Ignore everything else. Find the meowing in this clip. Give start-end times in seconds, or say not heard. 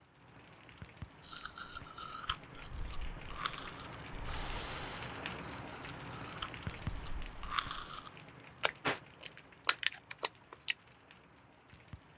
not heard.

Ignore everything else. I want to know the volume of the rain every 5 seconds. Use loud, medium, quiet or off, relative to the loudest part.
loud, loud, quiet.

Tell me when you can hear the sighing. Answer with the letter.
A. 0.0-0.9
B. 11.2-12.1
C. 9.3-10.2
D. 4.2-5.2
D.